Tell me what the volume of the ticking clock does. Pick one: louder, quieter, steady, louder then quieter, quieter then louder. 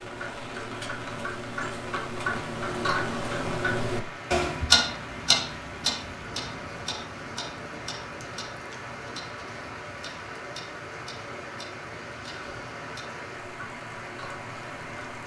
louder then quieter.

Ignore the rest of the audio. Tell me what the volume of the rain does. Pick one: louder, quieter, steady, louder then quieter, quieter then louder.
steady.